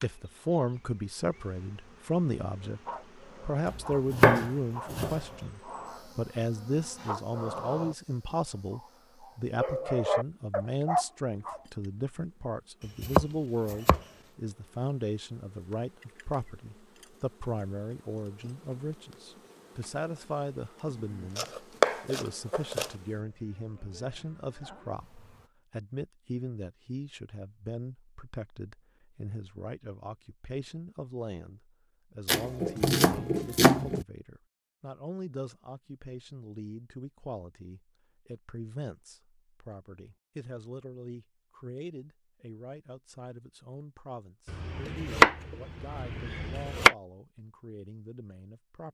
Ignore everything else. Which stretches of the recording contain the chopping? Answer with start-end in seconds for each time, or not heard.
3.6-5.2, 13.0-14.0, 21.4-22.9, 32.2-34.0, 44.5-47.0.